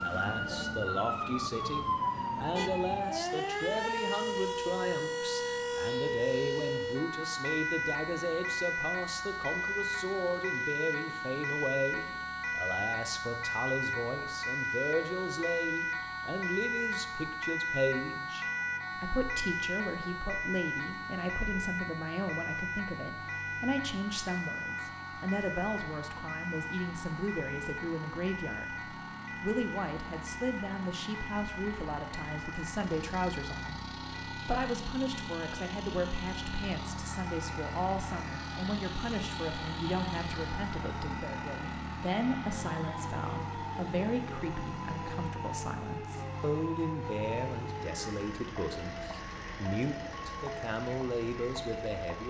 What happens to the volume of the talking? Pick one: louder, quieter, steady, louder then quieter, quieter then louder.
steady.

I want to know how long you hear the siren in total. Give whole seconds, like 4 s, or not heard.
52 s.